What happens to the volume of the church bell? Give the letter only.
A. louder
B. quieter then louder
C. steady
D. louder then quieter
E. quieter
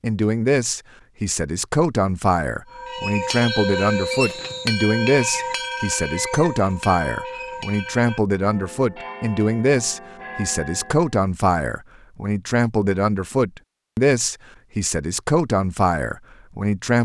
E.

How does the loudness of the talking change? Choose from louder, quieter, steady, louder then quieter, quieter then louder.
steady.